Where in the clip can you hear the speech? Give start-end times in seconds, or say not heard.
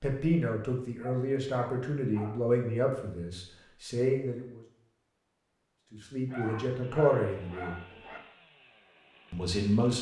0.0-4.6, 5.9-7.8, 9.3-9.9.